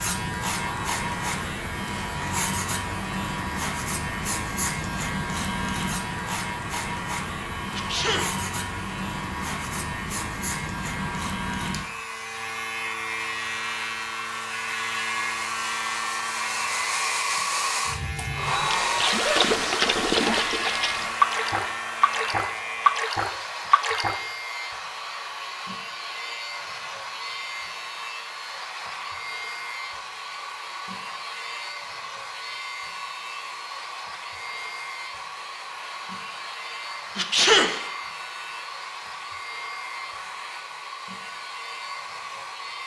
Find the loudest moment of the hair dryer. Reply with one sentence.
The volume of the hair dryer peaks at 19 seconds.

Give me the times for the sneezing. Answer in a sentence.
You can hear the sneezing from 7.7 to 8.3 s, from 19.2 to 20.5 s and from 37.1 to 37.8 s.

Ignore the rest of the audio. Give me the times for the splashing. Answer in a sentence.
You can hear the splashing from 18.7 to 24.2 s.